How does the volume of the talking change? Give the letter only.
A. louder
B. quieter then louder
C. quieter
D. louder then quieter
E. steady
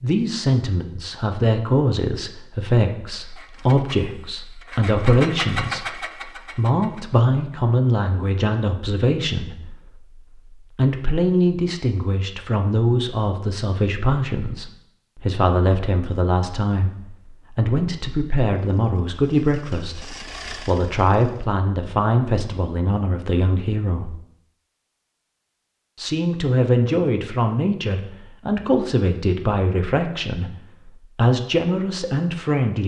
E.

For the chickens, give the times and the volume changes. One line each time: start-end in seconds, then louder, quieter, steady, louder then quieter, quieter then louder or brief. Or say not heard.
not heard.